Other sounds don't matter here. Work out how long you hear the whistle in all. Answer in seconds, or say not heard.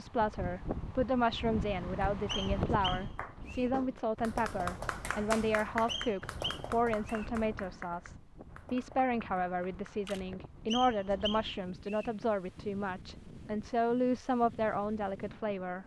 4 s.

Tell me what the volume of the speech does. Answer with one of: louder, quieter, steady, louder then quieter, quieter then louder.
steady.